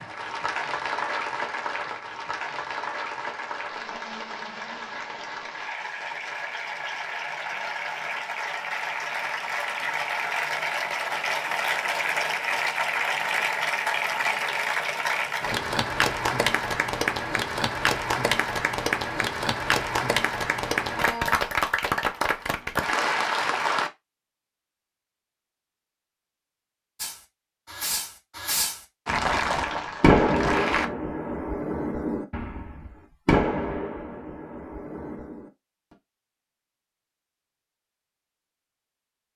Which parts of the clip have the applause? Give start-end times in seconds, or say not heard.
0.0-23.9, 29.1-30.9.